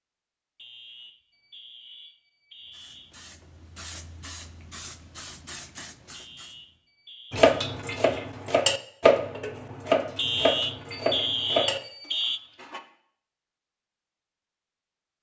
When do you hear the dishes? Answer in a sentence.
The dishes can be heard from 7.3 to 12.8 s.